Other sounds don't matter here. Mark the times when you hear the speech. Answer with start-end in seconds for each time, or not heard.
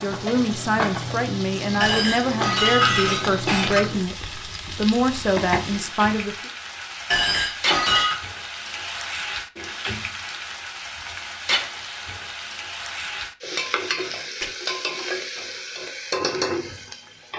0.0-6.5.